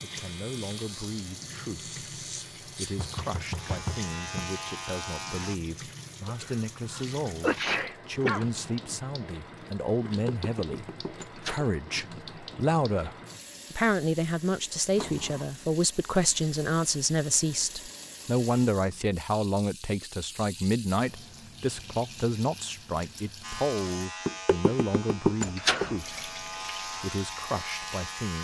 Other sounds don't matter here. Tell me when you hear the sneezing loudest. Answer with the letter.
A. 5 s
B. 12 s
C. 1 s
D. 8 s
D.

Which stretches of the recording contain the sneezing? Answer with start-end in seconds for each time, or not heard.
6.2-8.4.